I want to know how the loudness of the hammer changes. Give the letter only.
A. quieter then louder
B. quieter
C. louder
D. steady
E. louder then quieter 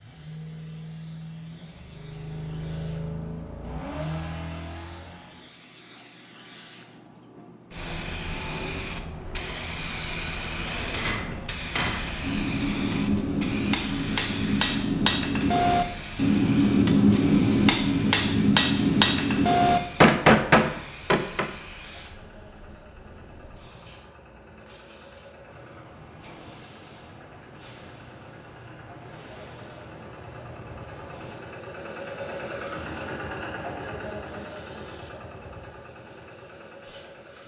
C.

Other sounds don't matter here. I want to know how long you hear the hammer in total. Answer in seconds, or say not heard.
11 s.